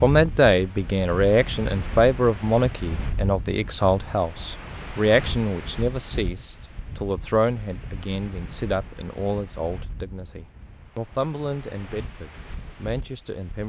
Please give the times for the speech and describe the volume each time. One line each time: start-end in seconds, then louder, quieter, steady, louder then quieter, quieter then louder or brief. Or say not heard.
0.0-13.6 quieter.